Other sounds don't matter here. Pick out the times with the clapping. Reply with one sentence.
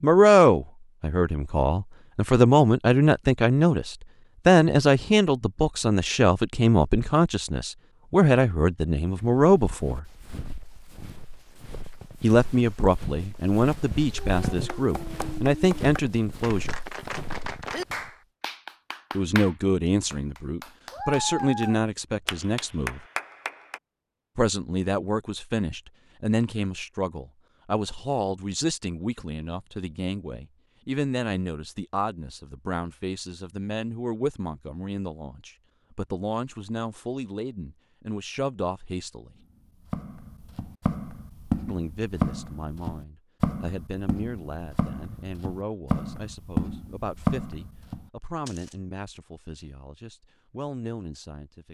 The clapping can be heard from 14.1 to 23.8 s.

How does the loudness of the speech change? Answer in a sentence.
The loudness of the speech goes down.